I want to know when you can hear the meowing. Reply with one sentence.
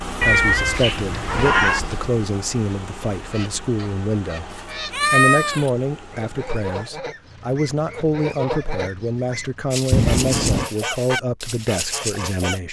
You can hear the meowing from 0.2 to 2.1 s, from 4.5 to 5.7 s and from 9.9 to 10.7 s.